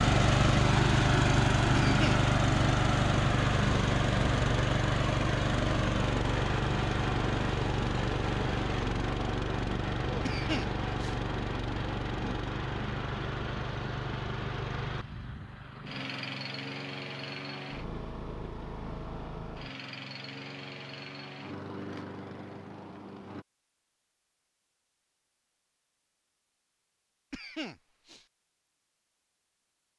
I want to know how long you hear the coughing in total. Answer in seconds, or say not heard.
2 s.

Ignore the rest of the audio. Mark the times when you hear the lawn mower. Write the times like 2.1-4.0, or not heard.
0.0-23.4.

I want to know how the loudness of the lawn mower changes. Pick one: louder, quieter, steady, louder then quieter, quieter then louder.
quieter.